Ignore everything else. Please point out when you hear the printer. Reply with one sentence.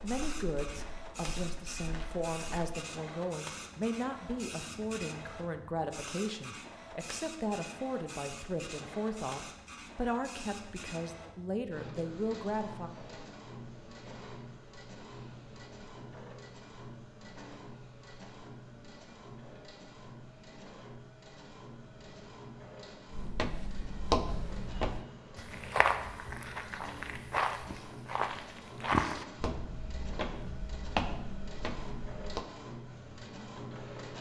You can hear the printer from 0.0 to 34.1 s.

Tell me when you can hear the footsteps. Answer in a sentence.
You can hear the footsteps from 0.0 to 2.8 s and from 23.1 to 32.5 s.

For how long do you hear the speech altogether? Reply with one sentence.
The speech can be heard for 13 seconds in total.